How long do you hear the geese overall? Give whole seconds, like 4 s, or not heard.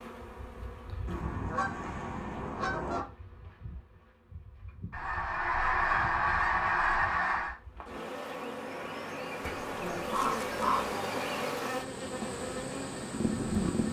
6 s.